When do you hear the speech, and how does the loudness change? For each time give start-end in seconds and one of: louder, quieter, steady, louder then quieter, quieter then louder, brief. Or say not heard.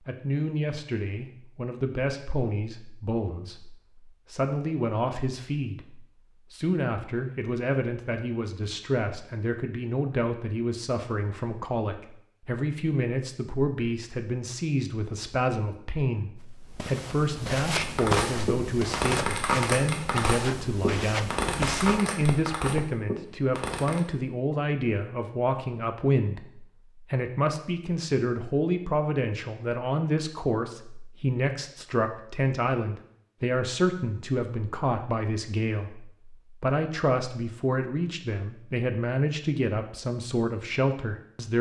0.1-41.5 steady.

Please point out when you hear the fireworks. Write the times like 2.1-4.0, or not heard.
17.8-24.0.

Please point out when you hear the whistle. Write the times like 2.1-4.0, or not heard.
not heard.